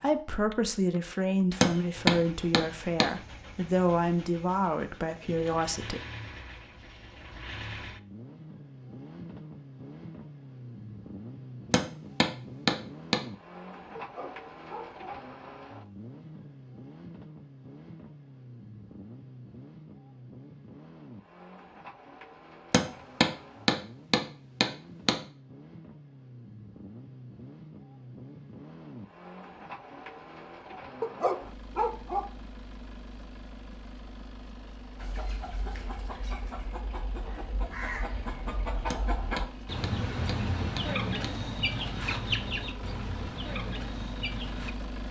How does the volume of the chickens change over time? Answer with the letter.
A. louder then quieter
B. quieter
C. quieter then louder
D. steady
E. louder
A.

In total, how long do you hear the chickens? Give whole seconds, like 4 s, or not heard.
10 s.